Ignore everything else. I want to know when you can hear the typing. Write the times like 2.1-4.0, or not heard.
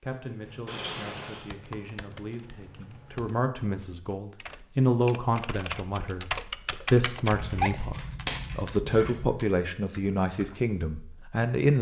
0.4-10.8.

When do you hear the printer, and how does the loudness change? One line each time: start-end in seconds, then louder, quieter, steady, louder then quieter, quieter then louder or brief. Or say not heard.
not heard.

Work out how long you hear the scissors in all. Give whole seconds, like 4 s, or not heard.
3 s.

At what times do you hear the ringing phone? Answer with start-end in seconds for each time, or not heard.
not heard.